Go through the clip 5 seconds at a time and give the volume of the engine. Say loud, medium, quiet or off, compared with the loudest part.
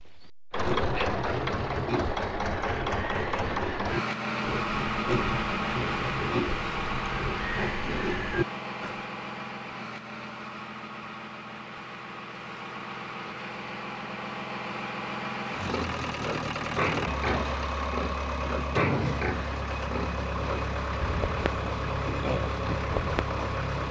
loud, loud, medium, loud, loud.